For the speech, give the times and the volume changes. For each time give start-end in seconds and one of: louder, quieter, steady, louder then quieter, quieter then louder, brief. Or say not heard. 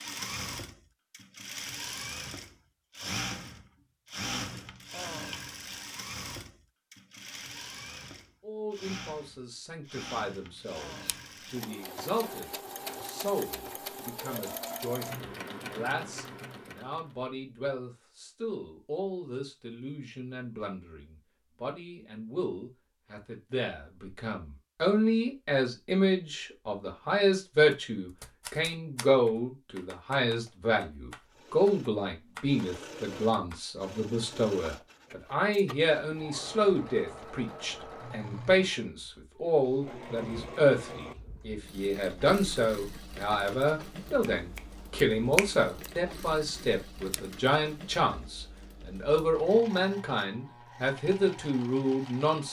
8.4-52.4 louder.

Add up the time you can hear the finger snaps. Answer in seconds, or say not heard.
2 s.